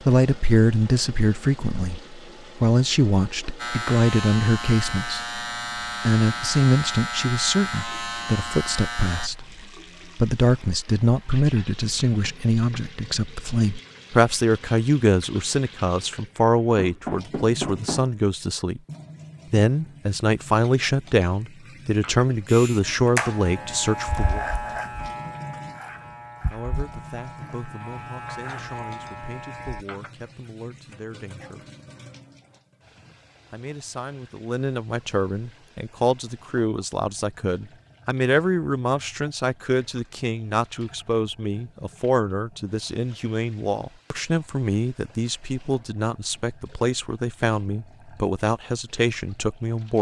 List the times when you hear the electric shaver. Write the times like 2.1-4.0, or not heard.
3.5-9.3, 22.4-29.9.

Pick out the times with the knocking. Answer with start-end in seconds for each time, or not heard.
16.8-18.1.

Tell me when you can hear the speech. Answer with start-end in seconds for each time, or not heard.
0.1-5.4, 6.0-9.4, 10.2-18.8, 19.5-24.4, 26.5-31.6, 33.5-49.9.